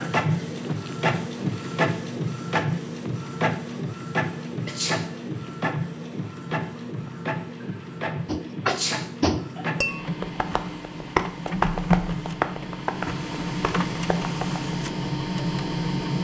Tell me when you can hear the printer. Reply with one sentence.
You can hear the printer from 0.0 to 16.2 s.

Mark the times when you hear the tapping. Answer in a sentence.
The tapping can be heard from 8.2 to 14.8 s.